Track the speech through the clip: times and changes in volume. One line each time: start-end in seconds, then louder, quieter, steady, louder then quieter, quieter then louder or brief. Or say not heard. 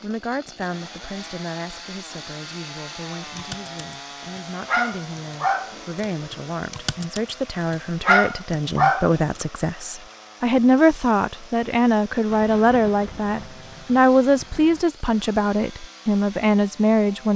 0.0-17.3 louder.